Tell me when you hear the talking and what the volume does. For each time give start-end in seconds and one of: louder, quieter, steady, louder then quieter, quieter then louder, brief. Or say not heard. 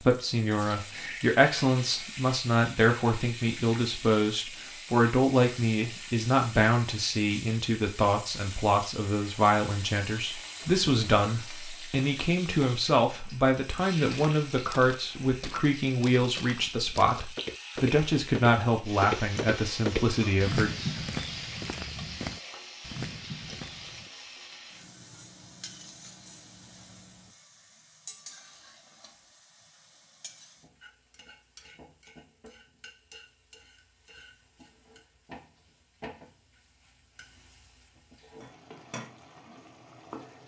0.0-20.7 steady.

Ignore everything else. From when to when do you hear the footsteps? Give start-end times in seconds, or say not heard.
14.1-24.1.